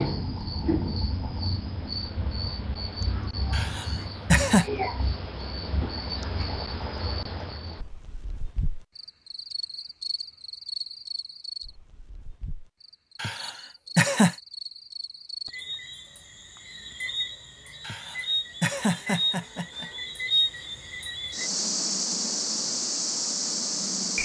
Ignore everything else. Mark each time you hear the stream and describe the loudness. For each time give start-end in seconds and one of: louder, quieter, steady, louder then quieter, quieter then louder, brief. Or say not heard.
not heard.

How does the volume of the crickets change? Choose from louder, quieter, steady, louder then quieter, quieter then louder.
quieter then louder.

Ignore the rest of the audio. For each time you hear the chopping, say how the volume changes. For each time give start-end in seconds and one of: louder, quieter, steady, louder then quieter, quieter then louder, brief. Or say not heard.
not heard.